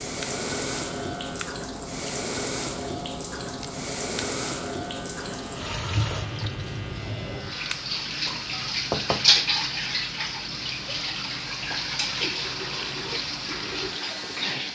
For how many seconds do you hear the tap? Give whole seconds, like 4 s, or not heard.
15 s.